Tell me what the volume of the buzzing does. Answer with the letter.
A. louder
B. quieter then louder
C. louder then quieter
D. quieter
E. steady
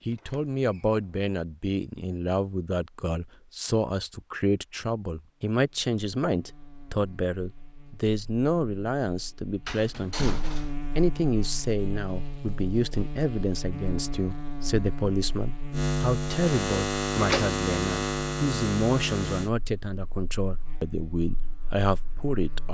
C.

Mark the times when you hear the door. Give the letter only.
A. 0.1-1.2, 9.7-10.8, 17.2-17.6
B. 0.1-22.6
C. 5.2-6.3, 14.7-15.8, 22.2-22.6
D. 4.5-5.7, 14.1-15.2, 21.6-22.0
A.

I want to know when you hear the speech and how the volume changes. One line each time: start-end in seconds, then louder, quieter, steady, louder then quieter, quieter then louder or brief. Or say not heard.
0.1-22.6 steady.